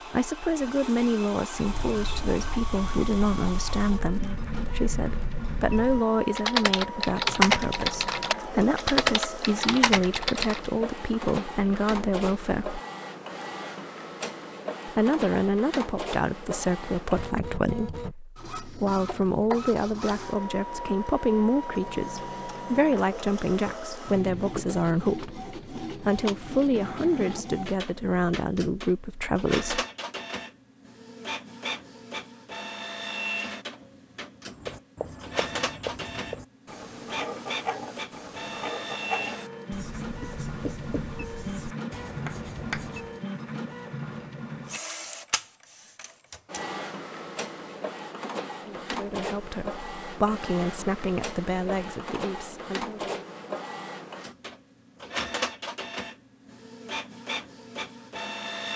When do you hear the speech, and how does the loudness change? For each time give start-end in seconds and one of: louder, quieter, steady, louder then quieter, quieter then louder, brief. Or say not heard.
0.1-12.8 steady
14.8-29.9 steady
48.6-53.2 louder then quieter.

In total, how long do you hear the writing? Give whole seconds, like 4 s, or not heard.
9 s.